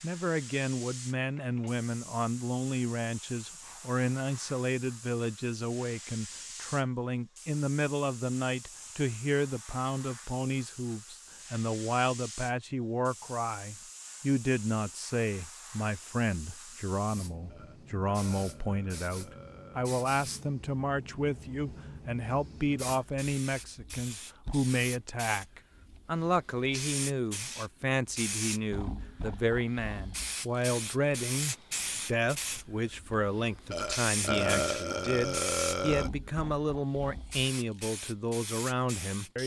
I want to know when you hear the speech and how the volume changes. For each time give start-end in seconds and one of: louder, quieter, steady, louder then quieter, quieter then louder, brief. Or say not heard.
0.0-39.4 steady.